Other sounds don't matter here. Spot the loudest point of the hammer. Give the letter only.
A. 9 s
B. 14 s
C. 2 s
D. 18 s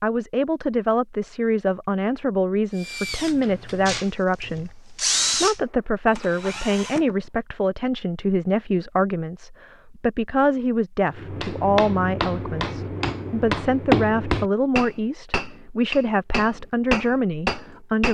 B.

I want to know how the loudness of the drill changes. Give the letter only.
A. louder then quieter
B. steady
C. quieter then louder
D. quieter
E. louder
A.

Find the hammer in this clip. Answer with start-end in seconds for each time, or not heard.
11.2-18.1.